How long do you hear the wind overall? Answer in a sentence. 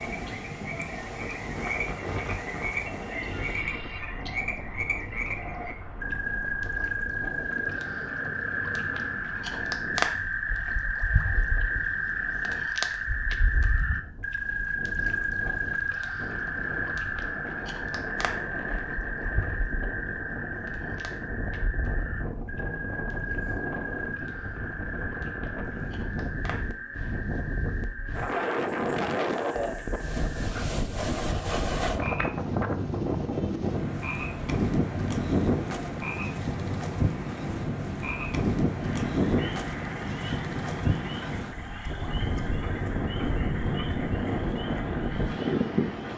The wind can be heard for 46 seconds in total.